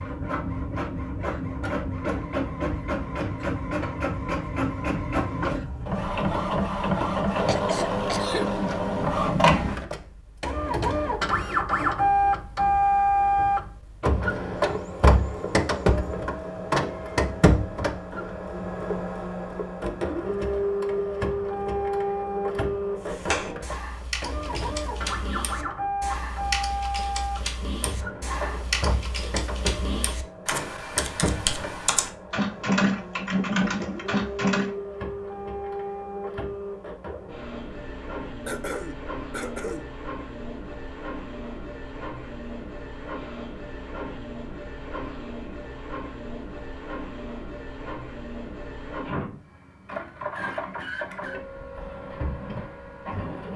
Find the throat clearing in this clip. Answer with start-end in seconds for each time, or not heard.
7.5-8.8, 38.5-39.9.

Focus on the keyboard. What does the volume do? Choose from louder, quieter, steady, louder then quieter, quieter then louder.
louder.